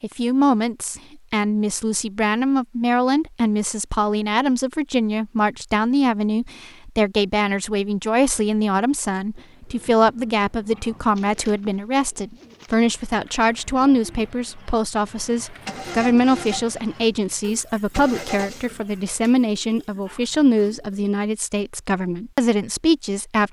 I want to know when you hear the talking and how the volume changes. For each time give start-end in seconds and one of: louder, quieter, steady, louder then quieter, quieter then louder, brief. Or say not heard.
0.0-23.4 steady.